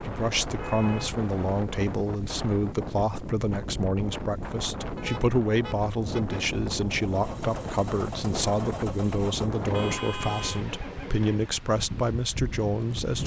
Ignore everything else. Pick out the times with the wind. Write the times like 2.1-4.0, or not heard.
0.0-13.2.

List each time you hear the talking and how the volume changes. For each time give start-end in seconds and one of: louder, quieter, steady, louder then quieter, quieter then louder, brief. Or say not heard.
0.0-13.2 steady.